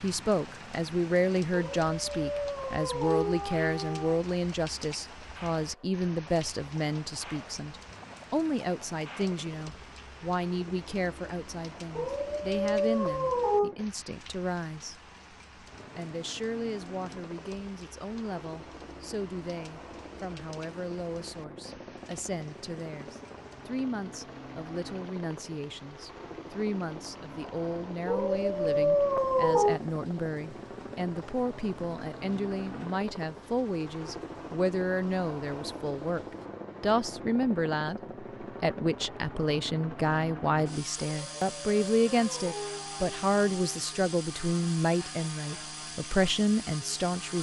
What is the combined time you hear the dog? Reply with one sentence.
The dog can be heard for 9 seconds in total.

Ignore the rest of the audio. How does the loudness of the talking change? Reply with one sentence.
The volume of the talking goes down, then up.